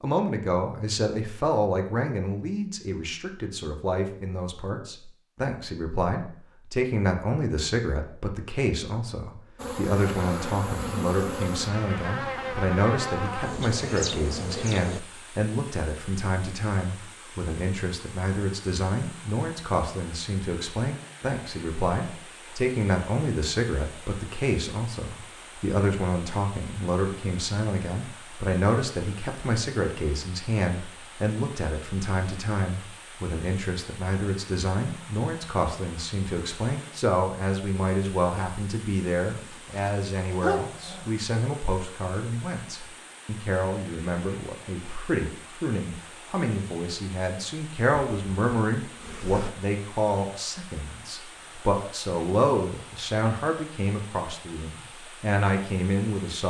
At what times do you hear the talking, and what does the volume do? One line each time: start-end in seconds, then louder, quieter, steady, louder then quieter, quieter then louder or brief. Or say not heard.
0.0-56.4 steady.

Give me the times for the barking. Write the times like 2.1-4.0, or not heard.
39.7-41.1.